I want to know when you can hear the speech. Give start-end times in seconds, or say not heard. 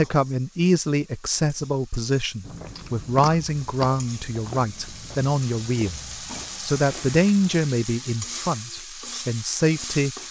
0.0-6.0, 6.7-10.2.